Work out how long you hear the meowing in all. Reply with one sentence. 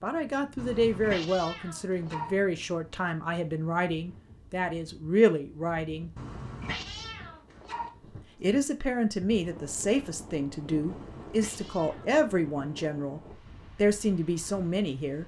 The meowing can be heard for 5 seconds in total.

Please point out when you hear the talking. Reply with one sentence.
You can hear the talking from 0.0 to 6.1 s and from 8.4 to 15.2 s.